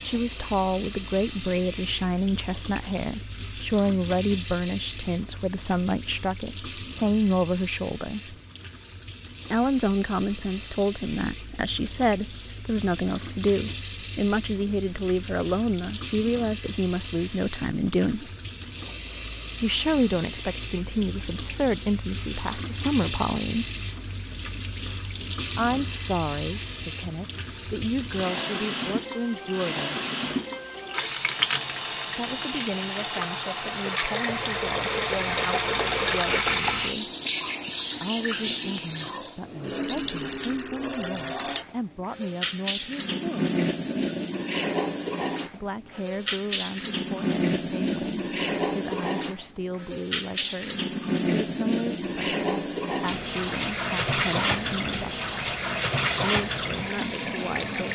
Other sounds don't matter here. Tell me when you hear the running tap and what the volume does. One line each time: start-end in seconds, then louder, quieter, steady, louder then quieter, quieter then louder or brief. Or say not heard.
0.0-57.9 louder.